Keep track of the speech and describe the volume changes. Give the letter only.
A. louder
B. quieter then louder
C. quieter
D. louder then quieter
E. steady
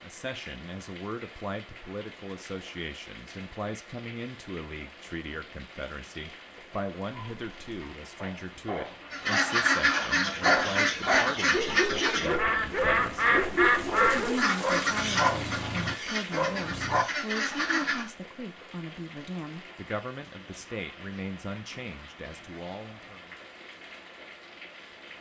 E.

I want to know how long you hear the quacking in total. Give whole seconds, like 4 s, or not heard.
9 s.